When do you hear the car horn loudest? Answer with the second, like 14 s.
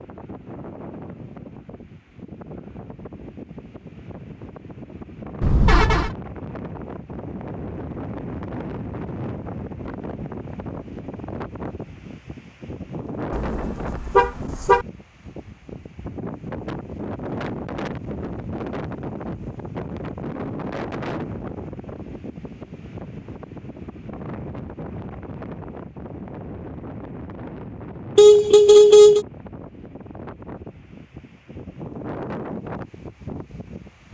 29 s.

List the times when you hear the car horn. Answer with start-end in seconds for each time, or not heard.
5.4-6.1, 13.3-14.8, 28.1-29.2.